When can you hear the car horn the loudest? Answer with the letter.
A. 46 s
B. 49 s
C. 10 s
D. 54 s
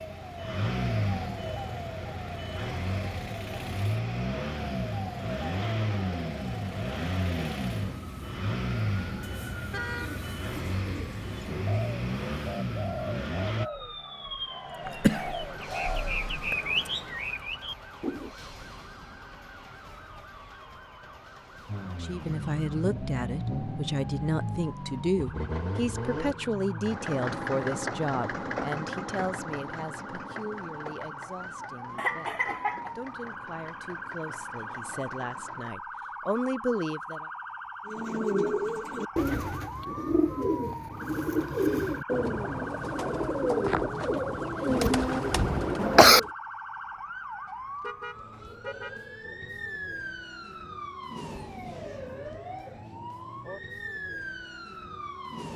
C.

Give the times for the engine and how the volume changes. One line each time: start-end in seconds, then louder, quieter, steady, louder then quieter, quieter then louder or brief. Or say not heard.
0.0-13.7 steady
21.6-35.8 quieter.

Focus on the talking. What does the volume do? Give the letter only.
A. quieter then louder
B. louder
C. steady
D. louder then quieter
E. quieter
A.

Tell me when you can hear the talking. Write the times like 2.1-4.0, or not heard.
21.8-37.2.